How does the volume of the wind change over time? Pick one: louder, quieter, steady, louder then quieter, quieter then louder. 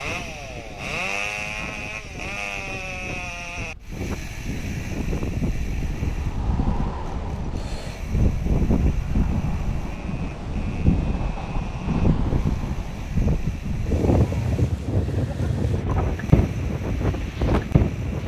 louder.